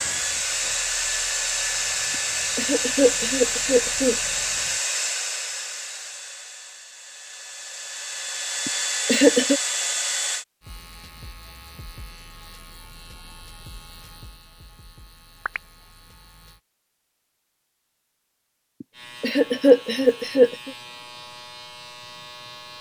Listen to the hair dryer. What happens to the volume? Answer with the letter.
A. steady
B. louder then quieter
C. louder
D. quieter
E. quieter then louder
E.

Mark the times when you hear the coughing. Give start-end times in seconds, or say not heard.
2.1-4.2, 8.7-9.6, 18.8-20.7.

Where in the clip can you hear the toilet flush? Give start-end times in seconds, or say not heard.
not heard.